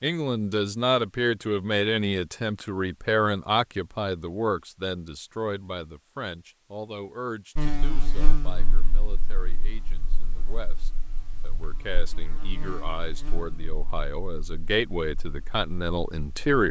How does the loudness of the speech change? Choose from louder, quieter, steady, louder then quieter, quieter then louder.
quieter then louder.